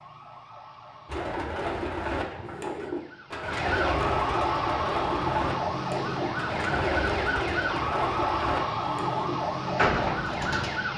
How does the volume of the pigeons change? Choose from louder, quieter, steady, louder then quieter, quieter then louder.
steady.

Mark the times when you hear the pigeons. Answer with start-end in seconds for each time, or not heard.
1.1-10.8.